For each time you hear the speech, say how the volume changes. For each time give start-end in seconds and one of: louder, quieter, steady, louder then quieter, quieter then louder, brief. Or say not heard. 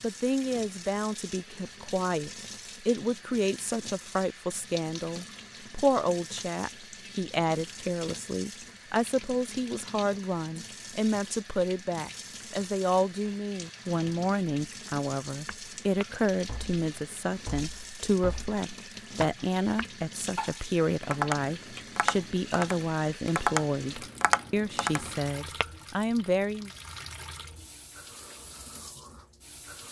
0.0-26.7 steady.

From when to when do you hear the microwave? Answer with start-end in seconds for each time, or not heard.
not heard.